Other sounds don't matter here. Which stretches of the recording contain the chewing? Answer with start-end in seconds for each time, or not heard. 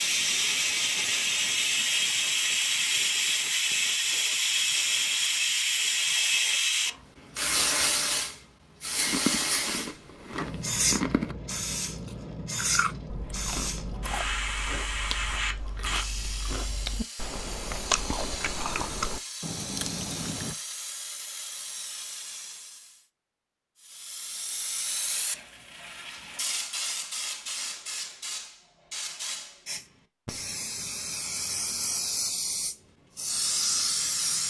9.1-20.6.